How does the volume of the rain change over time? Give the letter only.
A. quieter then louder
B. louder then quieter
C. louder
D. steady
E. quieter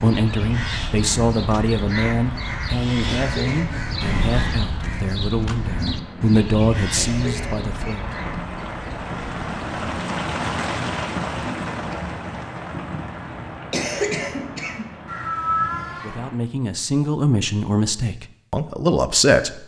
B.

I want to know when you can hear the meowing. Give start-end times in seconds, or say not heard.
4.0-4.6, 15.1-16.1.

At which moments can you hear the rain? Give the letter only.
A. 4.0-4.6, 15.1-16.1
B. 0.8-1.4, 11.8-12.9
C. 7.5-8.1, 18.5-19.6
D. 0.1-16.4
D.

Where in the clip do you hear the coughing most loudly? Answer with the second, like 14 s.
14 s.